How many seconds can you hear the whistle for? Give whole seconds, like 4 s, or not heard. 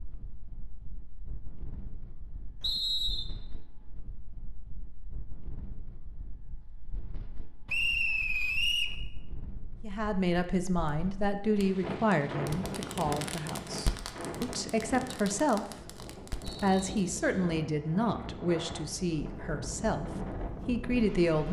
3 s.